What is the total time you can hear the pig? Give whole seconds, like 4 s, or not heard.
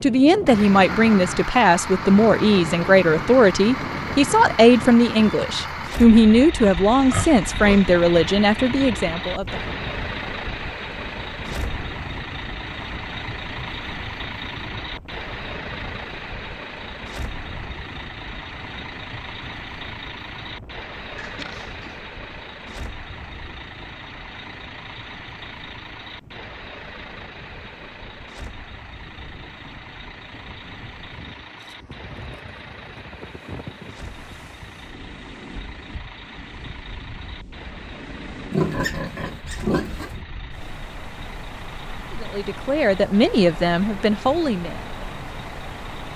4 s.